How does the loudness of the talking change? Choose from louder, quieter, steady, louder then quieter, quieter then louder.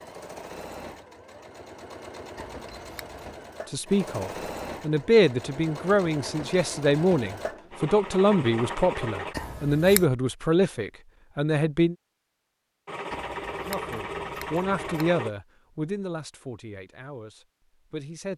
quieter.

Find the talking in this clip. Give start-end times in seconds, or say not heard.
3.7-11.9, 13.7-18.3.